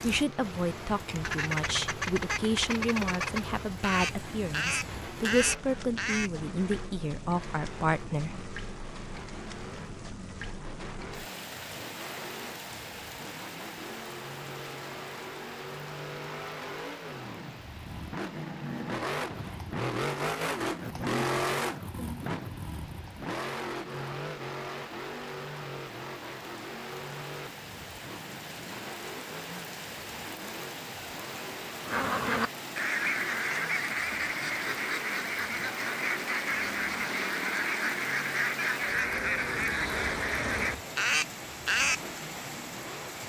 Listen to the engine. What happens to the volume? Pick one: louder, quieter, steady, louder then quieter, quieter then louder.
louder then quieter.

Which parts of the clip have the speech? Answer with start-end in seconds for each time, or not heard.
0.0-8.4.